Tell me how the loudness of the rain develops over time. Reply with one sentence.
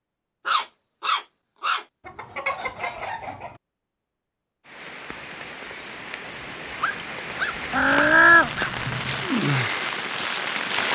The volume of the rain goes up.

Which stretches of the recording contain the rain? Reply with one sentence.
The rain can be heard from 4.7 to 10.8 s.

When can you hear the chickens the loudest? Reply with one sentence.
The loudest moment of the chickens is at 8 seconds.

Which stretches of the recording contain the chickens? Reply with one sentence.
You can hear the chickens from 2.0 to 3.6 s and from 7.7 to 9.2 s.